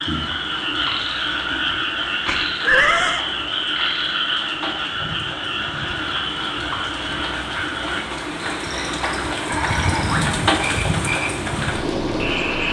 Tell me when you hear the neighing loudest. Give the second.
3 s.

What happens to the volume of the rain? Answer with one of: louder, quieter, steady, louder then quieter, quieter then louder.
louder.